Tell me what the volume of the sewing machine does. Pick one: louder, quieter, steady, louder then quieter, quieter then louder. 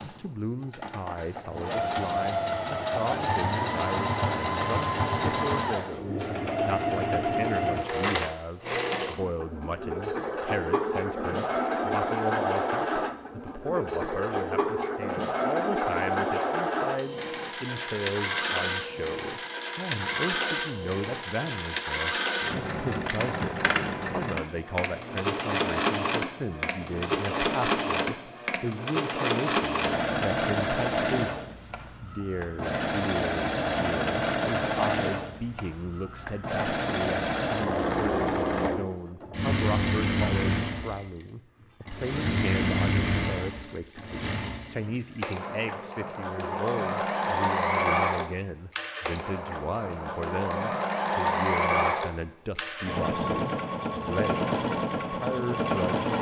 steady.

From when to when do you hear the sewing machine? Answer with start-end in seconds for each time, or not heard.
0.0-56.1.